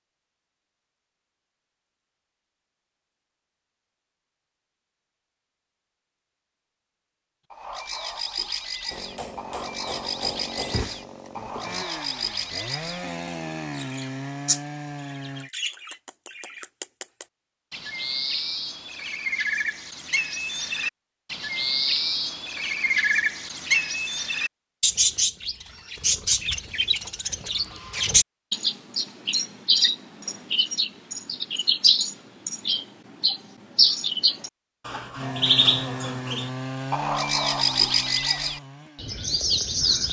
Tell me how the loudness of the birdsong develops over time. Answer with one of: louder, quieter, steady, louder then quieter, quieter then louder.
louder.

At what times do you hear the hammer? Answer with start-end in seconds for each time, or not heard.
8.9-10.9.